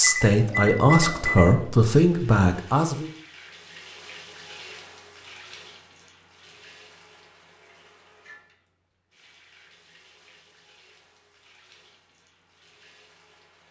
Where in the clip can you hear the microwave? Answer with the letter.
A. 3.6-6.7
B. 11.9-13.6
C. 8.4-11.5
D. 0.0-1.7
D.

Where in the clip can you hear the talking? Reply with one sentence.
You can hear the talking from 0.0 to 3.1 s.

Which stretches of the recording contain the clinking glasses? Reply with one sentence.
The clinking glasses can't be heard in this clip.